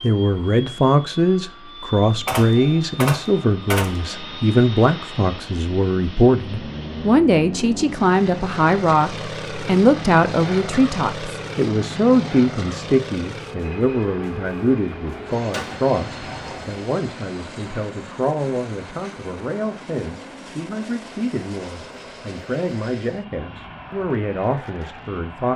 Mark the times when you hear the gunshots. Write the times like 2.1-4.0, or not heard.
2.2-4.2, 15.5-16.8.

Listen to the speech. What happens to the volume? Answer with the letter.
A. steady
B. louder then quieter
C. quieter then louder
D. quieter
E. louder
D.